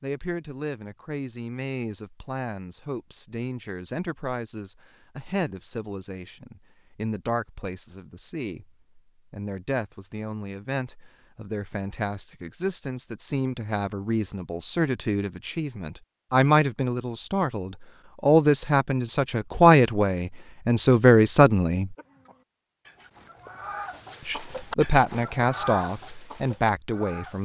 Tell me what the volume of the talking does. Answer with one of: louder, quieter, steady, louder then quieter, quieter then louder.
louder.